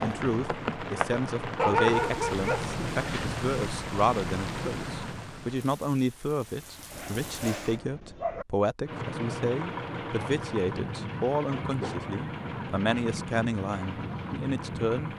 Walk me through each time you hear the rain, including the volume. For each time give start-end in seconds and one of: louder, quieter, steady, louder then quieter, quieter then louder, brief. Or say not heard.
0.0-7.8 quieter.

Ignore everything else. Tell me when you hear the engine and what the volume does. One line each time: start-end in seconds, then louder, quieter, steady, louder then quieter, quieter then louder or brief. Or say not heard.
0.0-5.2 steady
8.8-15.1 steady.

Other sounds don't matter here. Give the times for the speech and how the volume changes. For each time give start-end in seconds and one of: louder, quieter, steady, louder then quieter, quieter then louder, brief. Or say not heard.
0.0-15.1 steady.